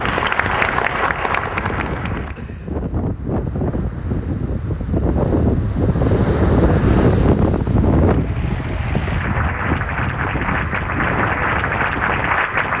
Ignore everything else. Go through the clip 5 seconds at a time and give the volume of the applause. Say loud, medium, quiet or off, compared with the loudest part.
loud, medium, loud.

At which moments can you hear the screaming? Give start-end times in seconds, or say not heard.
not heard.